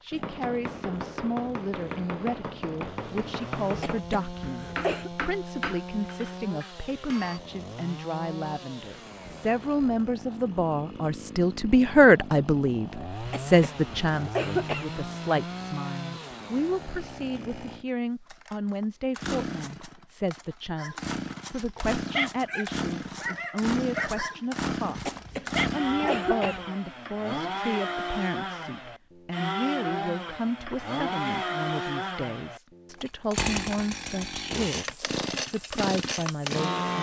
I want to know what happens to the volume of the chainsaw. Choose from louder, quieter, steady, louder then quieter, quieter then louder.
louder.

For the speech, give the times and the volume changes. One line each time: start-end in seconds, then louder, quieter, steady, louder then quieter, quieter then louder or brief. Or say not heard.
0.0-36.9 louder then quieter.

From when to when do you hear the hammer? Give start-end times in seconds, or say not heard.
0.2-7.4.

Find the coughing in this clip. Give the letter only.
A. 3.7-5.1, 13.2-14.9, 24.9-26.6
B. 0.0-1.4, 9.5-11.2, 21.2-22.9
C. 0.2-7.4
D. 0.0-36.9
A.